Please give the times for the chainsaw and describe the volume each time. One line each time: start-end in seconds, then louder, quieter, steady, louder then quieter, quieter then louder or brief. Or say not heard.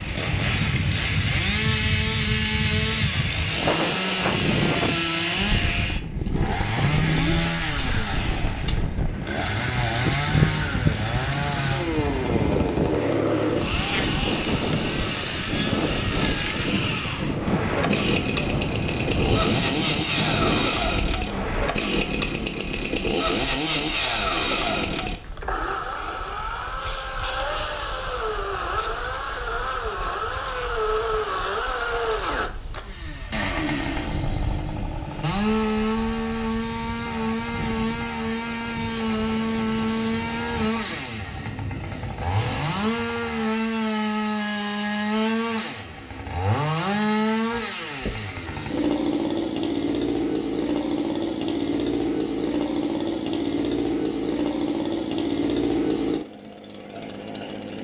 0.0-57.7 steady.